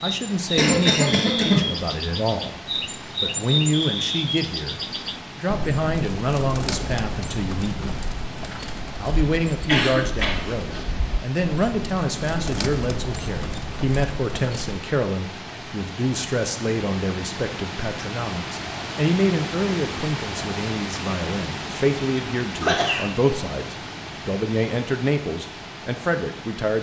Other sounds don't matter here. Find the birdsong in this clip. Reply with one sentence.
The birdsong can be heard from 0.0 to 14.8 s.